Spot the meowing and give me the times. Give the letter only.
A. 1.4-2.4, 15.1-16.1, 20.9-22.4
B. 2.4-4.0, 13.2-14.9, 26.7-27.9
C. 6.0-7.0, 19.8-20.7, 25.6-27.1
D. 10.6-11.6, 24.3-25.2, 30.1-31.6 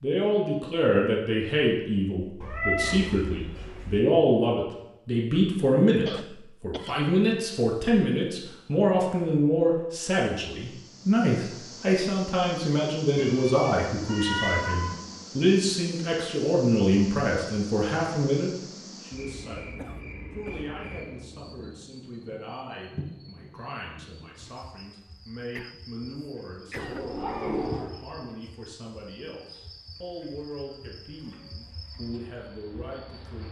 B.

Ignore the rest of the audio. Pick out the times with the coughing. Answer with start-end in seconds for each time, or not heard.
6.0-7.0, 19.8-20.7, 25.6-27.1.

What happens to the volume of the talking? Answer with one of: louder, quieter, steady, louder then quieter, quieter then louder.
quieter.